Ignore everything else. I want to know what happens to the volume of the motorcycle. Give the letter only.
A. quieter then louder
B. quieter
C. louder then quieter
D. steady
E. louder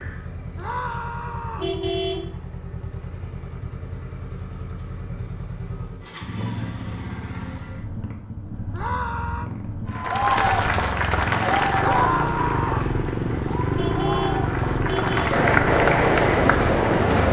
E.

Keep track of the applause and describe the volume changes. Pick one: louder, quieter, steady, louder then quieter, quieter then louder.
quieter then louder.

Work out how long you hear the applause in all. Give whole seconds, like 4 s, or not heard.
7 s.